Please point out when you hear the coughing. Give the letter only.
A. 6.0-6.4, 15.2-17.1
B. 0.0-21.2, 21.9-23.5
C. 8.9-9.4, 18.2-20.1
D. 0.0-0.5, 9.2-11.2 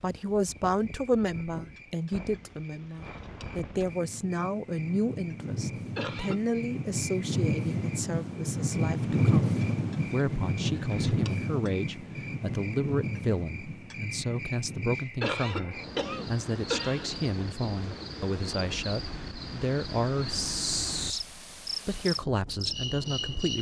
A.